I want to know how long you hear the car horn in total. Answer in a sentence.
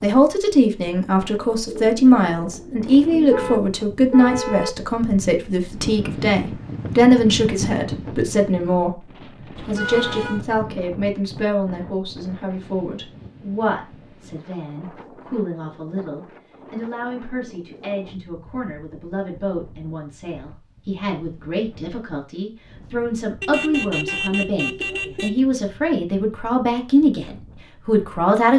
The car horn can be heard for 4 seconds in total.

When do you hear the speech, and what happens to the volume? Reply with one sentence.
The speech can be heard from 0.0 to 28.5 s, getting quieter then louder.